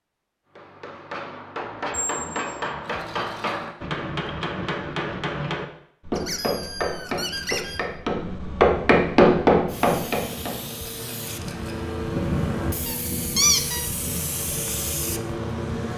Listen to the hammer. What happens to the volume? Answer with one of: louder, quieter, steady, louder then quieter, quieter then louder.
louder.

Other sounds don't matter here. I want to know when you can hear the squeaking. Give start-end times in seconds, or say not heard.
1.9-2.6, 6.2-7.8, 12.8-13.8.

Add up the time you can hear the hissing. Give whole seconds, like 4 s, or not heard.
6 s.